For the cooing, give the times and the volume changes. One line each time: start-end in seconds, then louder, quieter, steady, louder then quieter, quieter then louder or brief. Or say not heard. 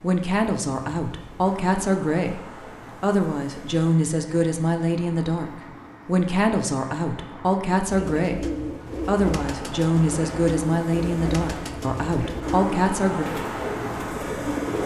7.8-14.8 steady.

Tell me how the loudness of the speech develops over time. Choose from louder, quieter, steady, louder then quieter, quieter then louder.
steady.